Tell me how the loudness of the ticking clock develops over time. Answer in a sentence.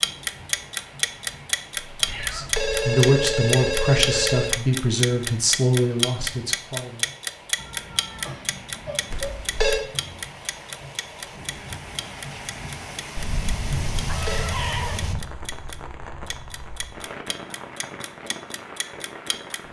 The volume of the ticking clock goes down.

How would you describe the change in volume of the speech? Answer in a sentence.
The volume of the speech goes down.